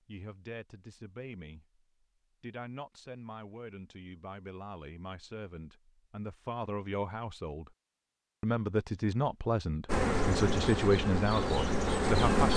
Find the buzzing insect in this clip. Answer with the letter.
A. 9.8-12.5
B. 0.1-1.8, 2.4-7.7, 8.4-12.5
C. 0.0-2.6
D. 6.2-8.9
A.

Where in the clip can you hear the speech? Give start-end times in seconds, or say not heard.
0.1-1.8, 2.4-7.7, 8.4-12.5.